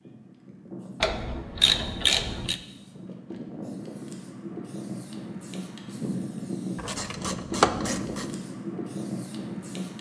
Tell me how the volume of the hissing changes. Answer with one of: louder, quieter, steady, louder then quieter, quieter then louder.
louder.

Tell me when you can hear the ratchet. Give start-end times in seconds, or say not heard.
1.0-2.5, 6.8-8.2.